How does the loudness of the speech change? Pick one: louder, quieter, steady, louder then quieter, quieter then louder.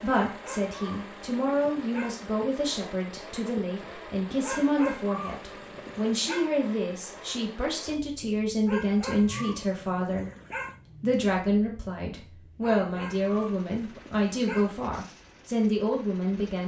steady.